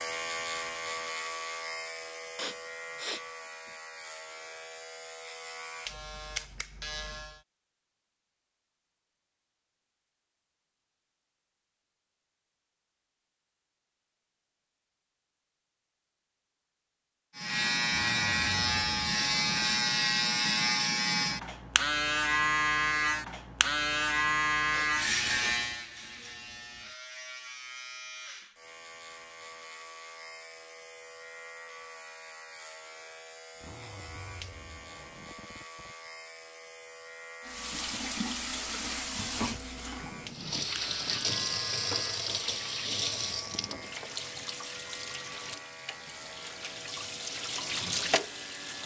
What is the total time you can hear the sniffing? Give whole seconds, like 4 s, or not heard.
2 s.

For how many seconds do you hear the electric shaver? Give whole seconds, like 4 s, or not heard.
39 s.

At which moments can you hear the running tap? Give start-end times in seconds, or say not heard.
37.4-48.8.